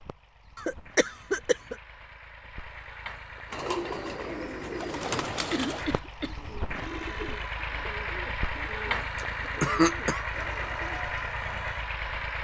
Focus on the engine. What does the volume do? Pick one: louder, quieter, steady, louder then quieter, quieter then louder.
louder.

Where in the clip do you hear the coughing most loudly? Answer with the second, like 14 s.
10 s.